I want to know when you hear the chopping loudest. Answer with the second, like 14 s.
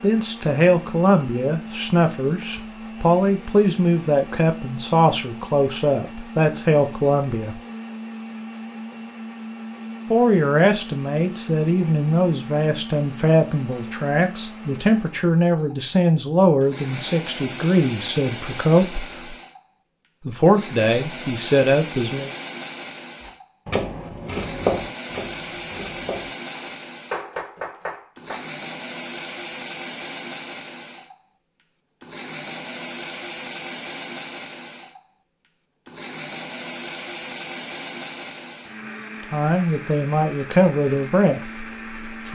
25 s.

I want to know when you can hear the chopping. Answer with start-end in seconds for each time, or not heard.
23.2-28.5.